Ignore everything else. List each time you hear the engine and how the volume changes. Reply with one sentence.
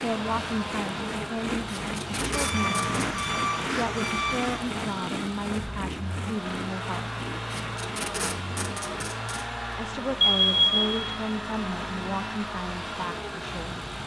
The engine can be heard from 0.0 to 14.0 s, at a steady volume.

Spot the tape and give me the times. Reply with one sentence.
The tape can be heard from 1.6 to 3.0 s and from 7.5 to 9.5 s.